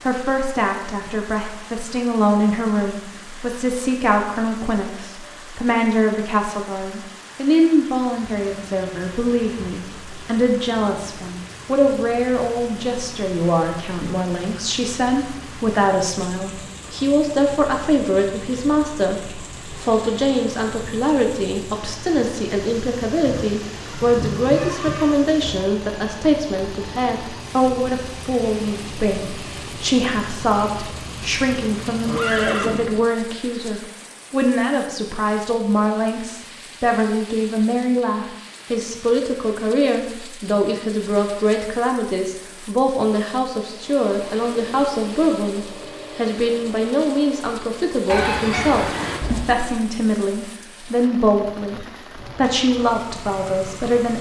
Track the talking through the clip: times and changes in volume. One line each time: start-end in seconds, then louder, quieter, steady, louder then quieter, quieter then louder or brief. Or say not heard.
0.1-54.1 steady.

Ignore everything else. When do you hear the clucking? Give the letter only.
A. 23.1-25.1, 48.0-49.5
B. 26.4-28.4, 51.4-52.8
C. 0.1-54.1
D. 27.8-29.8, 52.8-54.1
A.